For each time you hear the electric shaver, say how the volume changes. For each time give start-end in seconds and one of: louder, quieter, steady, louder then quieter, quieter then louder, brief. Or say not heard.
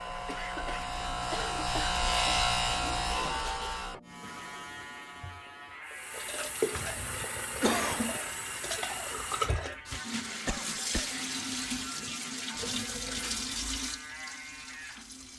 0.0-15.3 quieter.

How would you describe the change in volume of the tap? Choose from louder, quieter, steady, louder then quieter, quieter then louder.
steady.